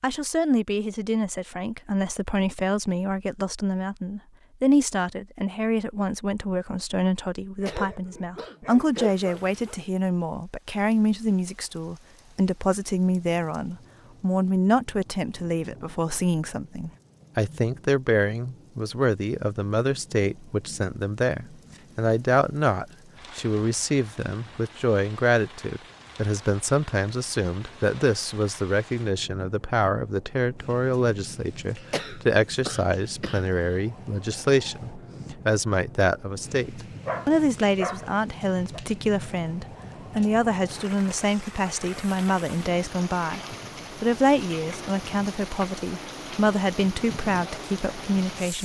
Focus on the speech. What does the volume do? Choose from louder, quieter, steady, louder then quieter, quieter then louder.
steady.